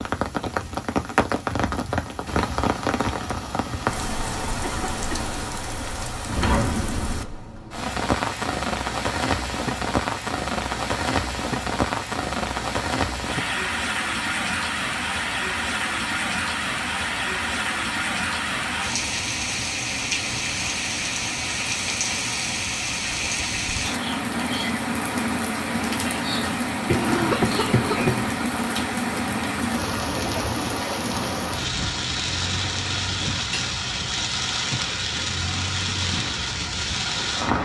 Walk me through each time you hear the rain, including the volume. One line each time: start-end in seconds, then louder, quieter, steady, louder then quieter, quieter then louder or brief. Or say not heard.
0.0-37.6 steady.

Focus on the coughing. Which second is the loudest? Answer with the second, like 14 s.
27 s.